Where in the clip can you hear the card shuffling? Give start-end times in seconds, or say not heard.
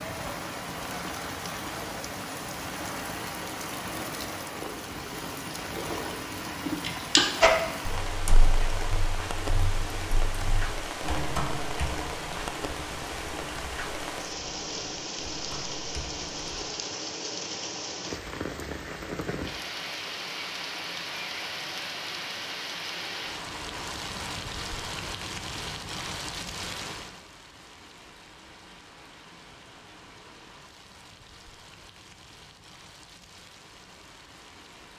not heard.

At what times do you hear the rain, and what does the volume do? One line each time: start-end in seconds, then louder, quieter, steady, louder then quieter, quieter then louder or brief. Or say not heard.
0.0-34.9 quieter.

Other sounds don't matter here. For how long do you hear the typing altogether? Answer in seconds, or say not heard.
10 s.